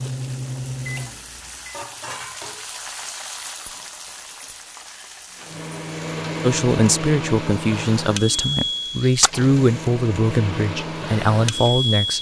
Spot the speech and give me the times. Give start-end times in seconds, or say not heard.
6.4-12.1.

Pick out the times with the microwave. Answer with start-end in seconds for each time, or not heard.
0.0-1.8, 5.3-12.1.